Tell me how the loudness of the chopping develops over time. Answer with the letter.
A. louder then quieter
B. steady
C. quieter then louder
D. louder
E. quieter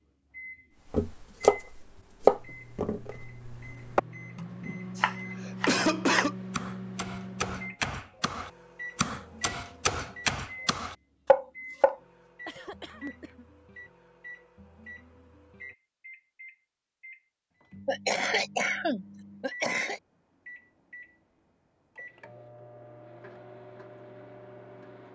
C.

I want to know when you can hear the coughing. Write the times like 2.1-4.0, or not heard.
5.0-6.3, 12.4-13.4, 17.9-20.0.